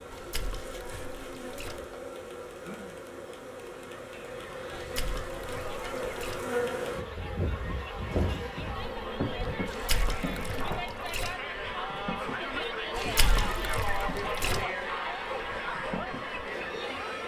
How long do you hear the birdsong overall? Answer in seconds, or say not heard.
not heard.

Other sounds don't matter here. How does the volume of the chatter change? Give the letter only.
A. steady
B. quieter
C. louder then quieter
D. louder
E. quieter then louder
D.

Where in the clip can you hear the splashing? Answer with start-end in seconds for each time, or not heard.
0.1-1.8, 4.8-6.5, 9.7-11.3, 12.9-14.7.